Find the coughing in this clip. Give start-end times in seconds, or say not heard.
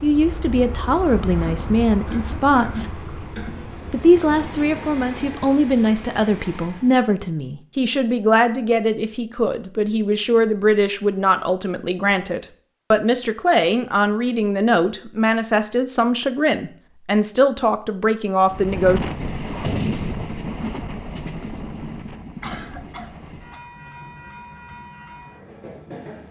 1.2-3.6, 22.4-23.6.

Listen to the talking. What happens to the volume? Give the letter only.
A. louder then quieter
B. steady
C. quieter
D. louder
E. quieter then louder
B.